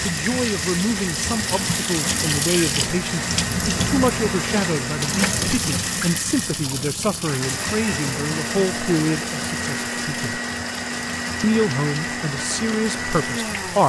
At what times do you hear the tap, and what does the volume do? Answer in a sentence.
The tap can be heard from 0.0 to 13.8 s, getting quieter.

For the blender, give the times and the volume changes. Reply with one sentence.
You can hear the blender from 0.0 to 13.8 s, at a steady volume.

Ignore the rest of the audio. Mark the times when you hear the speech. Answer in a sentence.
You can hear the speech from 0.0 to 10.4 s and from 11.4 to 13.8 s.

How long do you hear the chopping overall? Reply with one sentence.
The chopping can't be heard in this clip.